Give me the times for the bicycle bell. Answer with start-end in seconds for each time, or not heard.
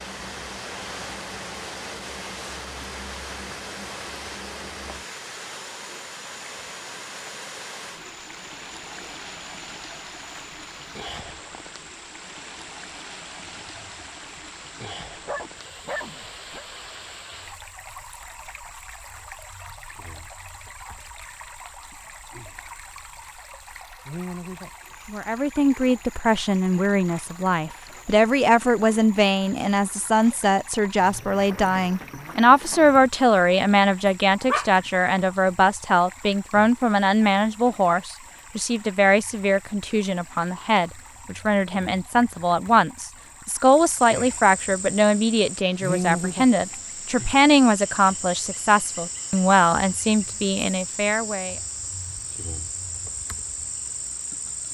not heard.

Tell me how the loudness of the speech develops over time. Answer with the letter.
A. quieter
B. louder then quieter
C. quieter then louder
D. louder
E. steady
E.